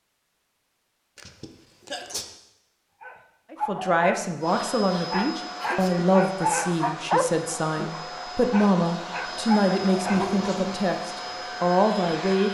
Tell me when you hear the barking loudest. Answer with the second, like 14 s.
7 s.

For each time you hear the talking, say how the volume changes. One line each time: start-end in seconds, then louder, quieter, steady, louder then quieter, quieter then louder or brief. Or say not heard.
3.5-12.4 steady.